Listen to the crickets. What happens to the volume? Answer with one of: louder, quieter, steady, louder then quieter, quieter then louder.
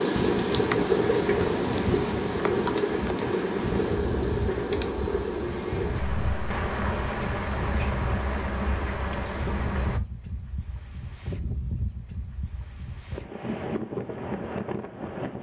quieter.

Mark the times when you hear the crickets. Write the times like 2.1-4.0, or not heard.
0.0-10.0.